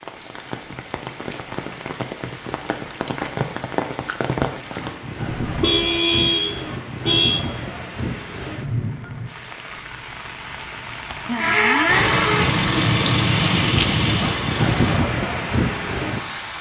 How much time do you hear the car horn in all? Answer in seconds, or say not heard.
2 s.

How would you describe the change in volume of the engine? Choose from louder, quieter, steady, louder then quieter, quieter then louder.
quieter.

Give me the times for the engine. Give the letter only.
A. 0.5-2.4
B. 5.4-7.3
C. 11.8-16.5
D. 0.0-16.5
C.